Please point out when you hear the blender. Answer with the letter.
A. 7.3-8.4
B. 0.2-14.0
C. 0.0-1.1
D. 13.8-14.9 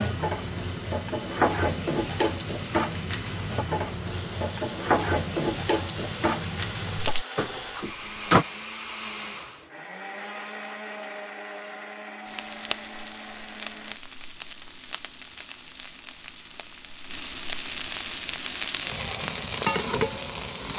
B.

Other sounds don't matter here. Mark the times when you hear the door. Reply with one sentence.
The door can be heard from 7.3 to 8.4 s.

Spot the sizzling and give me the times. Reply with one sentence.
You can hear the sizzling from 0.0 to 7.2 s and from 12.2 to 20.7 s.